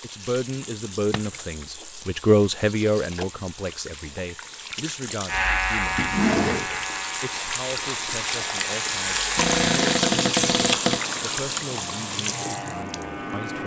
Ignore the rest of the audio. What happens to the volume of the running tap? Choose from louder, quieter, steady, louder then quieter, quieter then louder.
louder.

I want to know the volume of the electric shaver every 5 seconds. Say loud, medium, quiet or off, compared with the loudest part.
off, loud, medium.